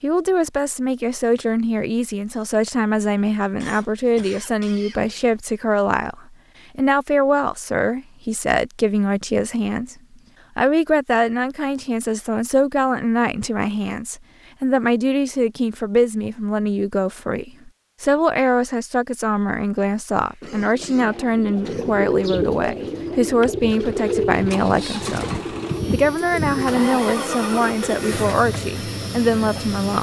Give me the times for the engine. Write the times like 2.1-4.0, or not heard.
24.3-29.9.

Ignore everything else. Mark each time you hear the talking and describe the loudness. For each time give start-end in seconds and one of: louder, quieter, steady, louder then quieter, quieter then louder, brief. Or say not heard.
0.0-9.9 steady
10.6-29.9 steady.